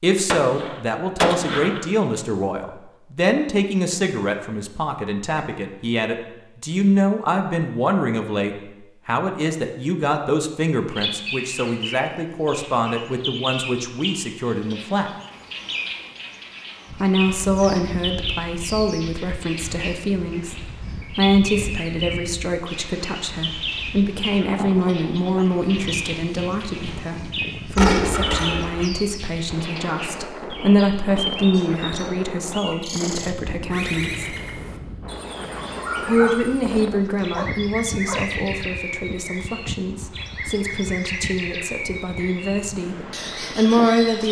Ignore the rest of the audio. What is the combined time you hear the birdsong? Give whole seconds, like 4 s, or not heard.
33 s.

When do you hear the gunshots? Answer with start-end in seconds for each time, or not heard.
0.2-1.9, 27.8-28.9.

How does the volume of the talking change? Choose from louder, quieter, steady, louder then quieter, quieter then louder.
steady.